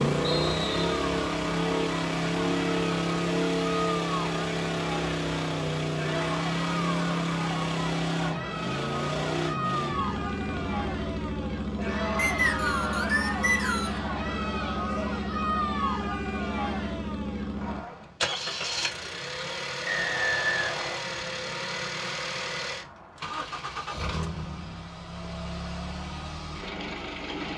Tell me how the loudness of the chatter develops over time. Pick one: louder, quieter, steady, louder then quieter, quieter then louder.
steady.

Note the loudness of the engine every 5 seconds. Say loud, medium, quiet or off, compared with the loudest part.
loud, loud, medium, medium, medium, medium.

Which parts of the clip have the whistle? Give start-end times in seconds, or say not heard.
0.2-0.9, 12.2-14.0, 19.9-21.1.